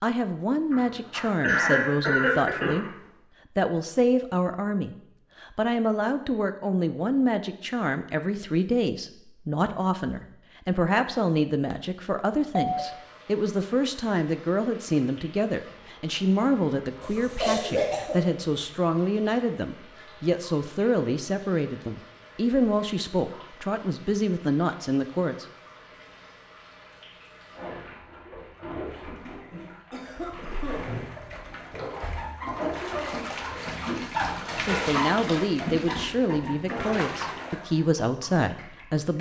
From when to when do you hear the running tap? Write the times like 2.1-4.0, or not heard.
12.7-39.1.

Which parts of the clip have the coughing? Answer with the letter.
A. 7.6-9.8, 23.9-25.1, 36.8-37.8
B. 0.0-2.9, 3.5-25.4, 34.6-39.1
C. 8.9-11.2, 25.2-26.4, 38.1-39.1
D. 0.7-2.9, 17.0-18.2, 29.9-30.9
D.